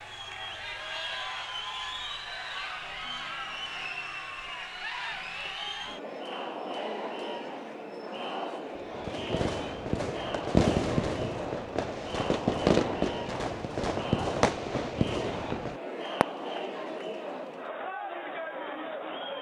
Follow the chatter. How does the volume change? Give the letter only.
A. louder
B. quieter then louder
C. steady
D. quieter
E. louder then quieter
C.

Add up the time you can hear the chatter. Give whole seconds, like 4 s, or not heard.
19 s.